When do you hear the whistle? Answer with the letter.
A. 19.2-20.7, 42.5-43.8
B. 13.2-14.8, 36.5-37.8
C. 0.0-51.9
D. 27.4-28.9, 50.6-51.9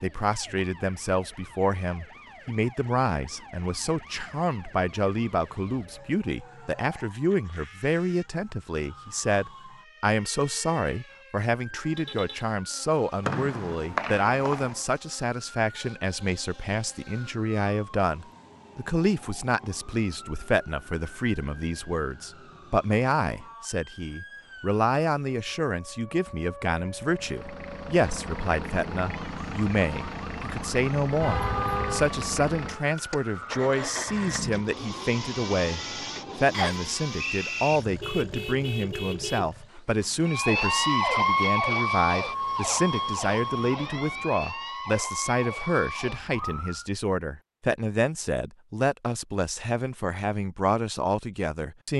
B.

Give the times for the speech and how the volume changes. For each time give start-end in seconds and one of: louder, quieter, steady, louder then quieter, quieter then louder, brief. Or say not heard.
0.0-51.9 steady.